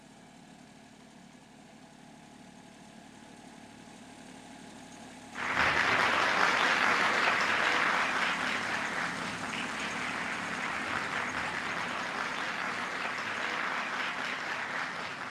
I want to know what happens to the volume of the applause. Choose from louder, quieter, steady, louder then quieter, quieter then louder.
quieter.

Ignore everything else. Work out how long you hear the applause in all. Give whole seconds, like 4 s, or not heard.
10 s.